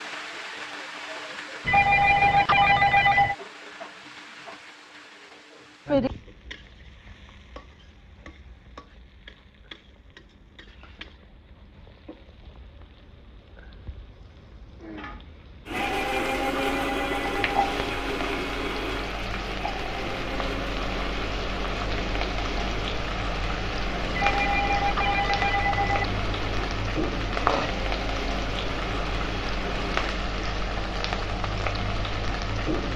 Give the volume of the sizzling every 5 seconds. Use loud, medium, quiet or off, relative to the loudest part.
medium, medium, quiet, medium, loud, loud, loud.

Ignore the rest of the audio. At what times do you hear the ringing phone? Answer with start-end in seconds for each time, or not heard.
1.6-3.4, 15.7-17.6, 24.1-26.1.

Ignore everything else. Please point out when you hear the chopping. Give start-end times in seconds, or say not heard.
not heard.